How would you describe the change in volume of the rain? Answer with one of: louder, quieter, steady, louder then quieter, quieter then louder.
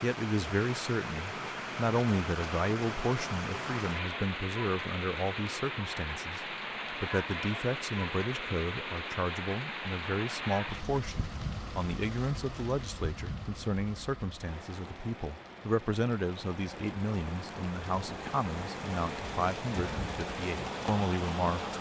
quieter then louder.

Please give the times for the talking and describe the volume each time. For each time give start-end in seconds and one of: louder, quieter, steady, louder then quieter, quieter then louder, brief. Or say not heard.
0.0-21.7 steady.